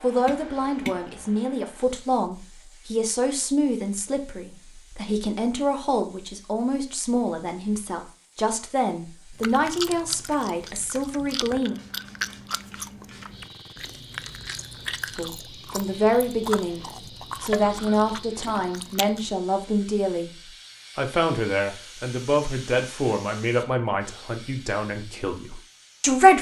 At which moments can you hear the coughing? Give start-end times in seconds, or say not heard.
not heard.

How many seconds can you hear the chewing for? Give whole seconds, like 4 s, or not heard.
10 s.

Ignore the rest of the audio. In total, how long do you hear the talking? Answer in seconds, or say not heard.
22 s.